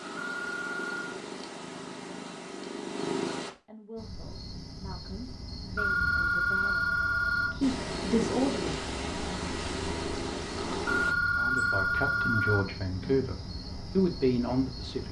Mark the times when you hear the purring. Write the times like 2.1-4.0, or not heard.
0.0-3.5, 7.6-11.2.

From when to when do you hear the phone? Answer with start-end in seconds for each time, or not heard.
0.1-1.0, 5.8-7.5, 10.8-12.7.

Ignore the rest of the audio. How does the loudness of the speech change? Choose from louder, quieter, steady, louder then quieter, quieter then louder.
louder.